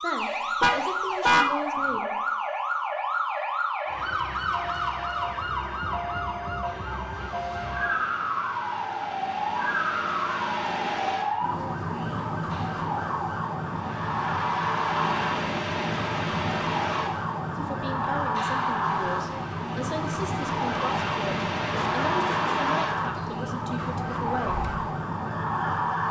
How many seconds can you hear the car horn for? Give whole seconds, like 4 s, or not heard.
2 s.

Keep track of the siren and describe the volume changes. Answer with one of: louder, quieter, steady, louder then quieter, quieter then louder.
steady.